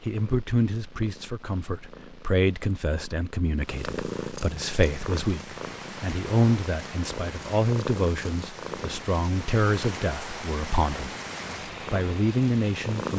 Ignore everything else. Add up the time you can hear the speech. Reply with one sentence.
You can hear the speech for 12 seconds altogether.